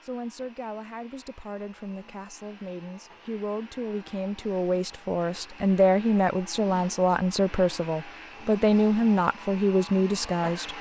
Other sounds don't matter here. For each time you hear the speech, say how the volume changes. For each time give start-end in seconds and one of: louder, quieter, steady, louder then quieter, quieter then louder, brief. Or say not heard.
0.0-10.7 louder.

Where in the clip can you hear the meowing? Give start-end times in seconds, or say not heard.
not heard.